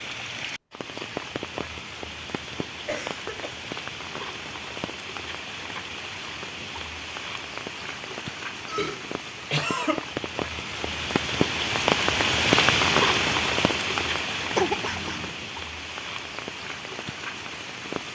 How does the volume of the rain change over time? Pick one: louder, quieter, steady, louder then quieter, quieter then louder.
louder then quieter.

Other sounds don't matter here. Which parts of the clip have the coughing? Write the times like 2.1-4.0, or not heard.
2.9-3.5, 8.7-10.2, 14.6-15.3.